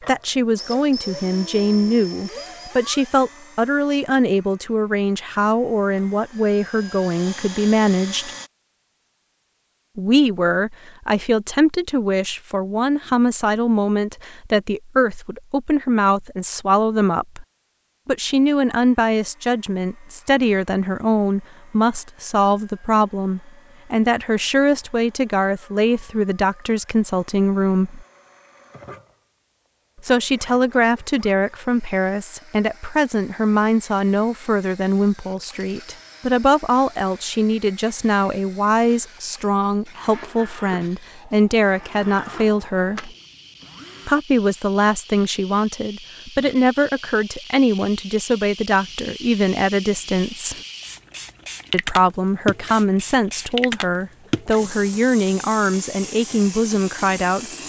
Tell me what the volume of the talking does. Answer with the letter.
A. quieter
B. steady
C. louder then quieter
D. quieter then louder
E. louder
B.